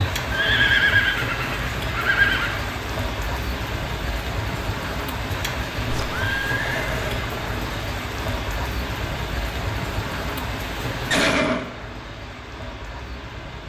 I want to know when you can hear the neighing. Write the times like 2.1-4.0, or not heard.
0.3-2.8, 5.8-7.3, 11.1-11.7.